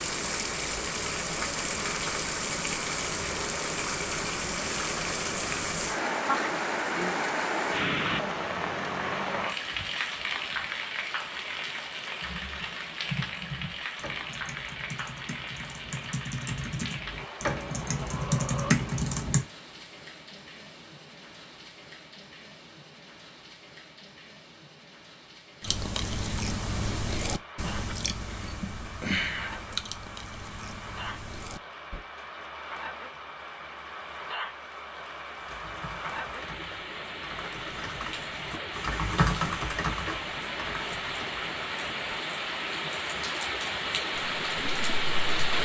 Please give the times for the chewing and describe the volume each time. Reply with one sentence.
You can hear the chewing from 25.6 to 32.0 s, getting quieter.